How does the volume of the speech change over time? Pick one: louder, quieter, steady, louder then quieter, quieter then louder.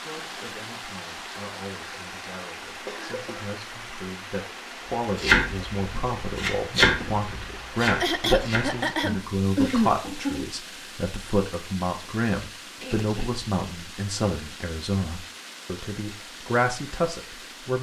louder.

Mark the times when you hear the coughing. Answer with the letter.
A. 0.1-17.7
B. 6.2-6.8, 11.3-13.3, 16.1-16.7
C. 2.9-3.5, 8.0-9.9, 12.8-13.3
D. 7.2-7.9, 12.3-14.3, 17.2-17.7
C.